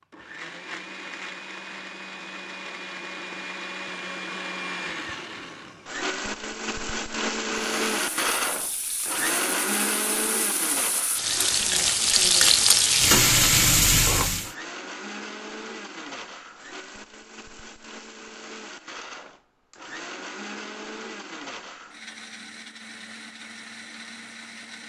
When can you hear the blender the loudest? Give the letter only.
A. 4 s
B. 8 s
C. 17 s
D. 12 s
B.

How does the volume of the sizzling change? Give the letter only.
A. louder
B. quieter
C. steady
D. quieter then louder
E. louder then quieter
A.